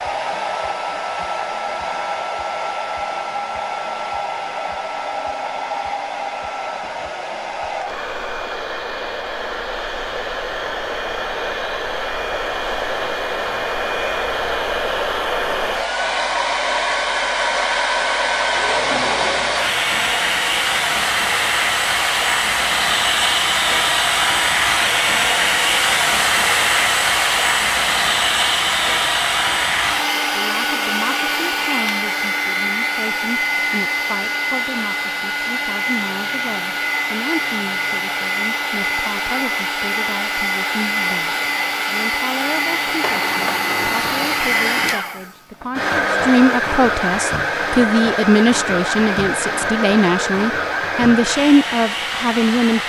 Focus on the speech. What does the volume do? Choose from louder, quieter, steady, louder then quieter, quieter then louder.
louder.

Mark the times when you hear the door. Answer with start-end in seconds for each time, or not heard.
18.5-19.7, 43.0-45.0.